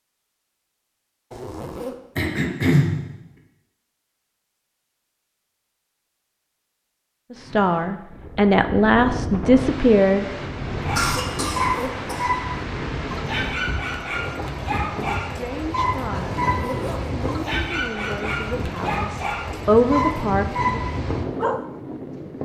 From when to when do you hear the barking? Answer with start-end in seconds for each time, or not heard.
10.8-21.6.